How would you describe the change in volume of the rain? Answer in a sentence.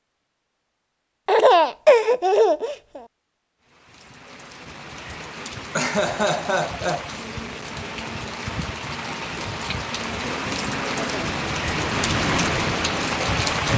The loudness of the rain goes up.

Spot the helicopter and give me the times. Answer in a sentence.
The helicopter can be heard from 10.2 to 13.6 s.